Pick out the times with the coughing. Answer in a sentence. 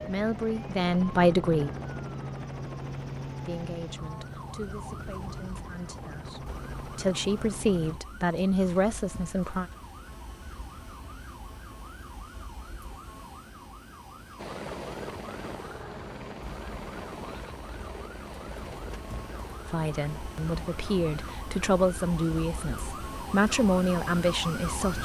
The coughing can't be heard in this clip.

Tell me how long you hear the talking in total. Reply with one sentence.
The talking can be heard for 13 seconds in total.